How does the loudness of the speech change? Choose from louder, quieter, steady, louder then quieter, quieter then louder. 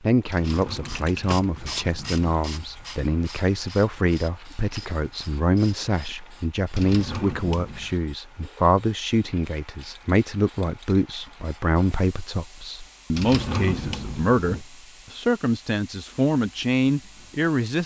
steady.